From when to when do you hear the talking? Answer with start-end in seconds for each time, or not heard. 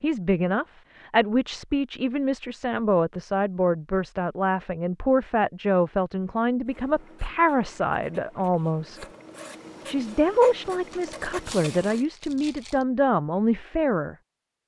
0.0-9.1, 9.8-14.2.